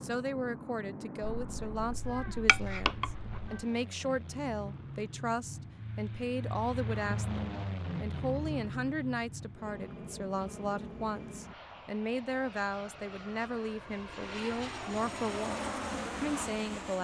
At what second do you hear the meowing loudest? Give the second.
3 s.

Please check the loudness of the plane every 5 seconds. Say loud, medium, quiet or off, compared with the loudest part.
medium, loud, medium, loud.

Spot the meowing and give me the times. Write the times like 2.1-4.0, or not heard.
1.2-3.6.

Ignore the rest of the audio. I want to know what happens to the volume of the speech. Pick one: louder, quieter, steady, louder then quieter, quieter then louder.
steady.